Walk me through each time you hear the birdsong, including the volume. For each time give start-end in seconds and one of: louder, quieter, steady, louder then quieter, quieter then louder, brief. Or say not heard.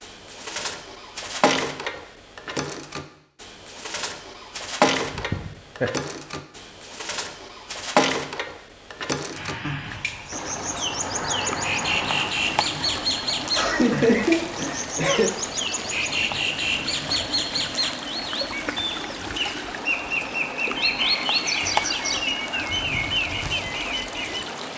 0.0-24.6 steady.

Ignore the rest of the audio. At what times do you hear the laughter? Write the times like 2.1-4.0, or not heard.
5.1-5.9, 13.5-15.3.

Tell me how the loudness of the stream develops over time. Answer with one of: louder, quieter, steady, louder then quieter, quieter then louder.
steady.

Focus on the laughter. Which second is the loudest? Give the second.
14 s.